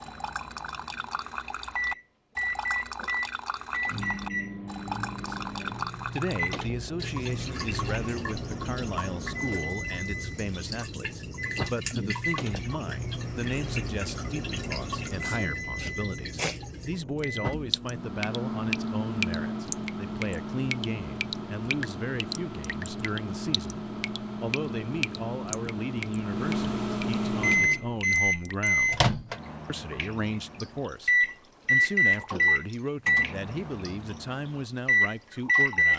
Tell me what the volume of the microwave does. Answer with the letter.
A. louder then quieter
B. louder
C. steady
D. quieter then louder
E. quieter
B.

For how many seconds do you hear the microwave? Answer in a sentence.
You can hear the microwave for 36 seconds altogether.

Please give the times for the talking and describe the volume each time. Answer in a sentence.
The talking can be heard from 5.2 to 29.1 s, at a steady volume; and from 29.6 to 35.9 s, at a steady volume.